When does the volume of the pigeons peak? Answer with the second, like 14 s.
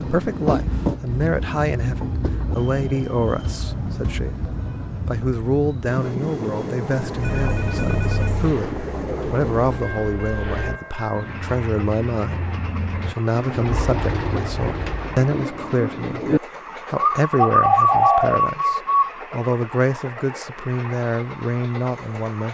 18 s.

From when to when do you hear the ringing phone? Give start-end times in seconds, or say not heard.
7.2-8.5.